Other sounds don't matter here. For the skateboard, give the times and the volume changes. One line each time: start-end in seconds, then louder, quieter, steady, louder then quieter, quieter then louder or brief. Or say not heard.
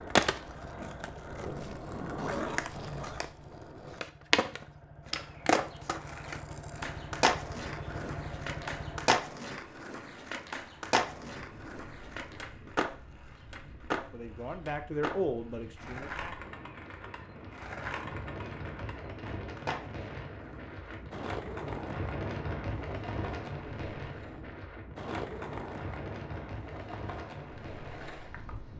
0.1-28.7 quieter.